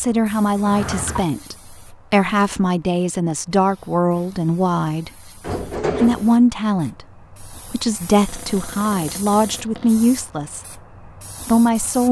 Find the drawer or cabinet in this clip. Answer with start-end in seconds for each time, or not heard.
0.6-1.3, 5.4-6.3, 8.2-9.9.